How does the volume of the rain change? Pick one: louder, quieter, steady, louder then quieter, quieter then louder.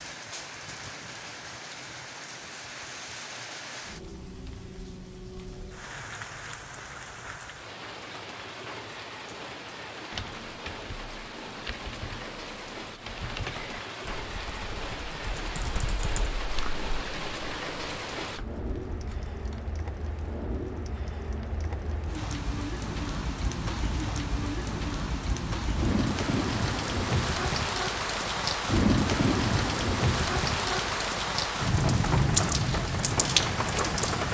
louder.